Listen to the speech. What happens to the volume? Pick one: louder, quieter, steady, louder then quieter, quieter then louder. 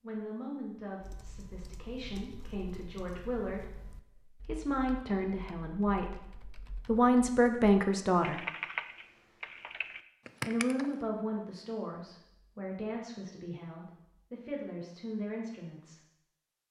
louder then quieter.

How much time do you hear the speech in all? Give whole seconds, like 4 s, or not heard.
14 s.